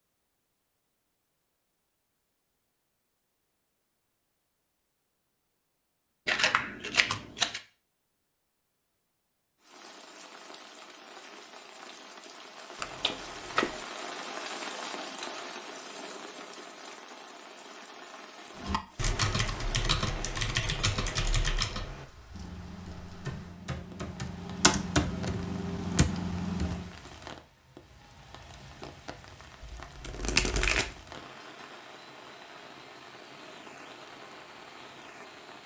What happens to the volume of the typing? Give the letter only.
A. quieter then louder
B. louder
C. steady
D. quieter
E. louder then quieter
A.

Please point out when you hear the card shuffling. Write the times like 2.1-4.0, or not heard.
6.2-7.6, 12.8-13.8, 29.8-30.9.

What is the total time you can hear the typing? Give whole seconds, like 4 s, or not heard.
8 s.